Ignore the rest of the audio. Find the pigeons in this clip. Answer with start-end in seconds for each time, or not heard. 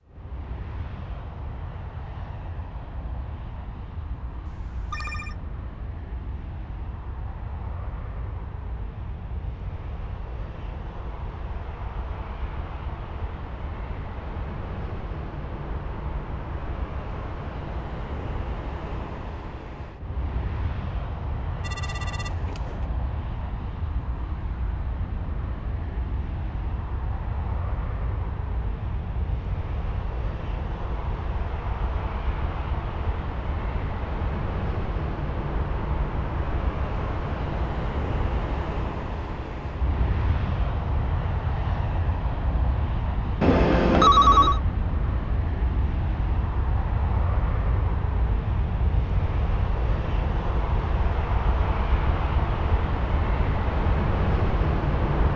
not heard.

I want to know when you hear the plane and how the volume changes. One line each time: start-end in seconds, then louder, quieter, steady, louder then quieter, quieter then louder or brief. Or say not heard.
0.1-55.3 louder.